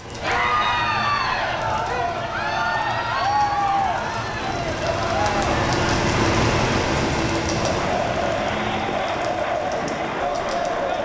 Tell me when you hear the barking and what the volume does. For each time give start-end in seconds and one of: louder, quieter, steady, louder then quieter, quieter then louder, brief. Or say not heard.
not heard.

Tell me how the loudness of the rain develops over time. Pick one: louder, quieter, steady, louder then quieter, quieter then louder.
louder then quieter.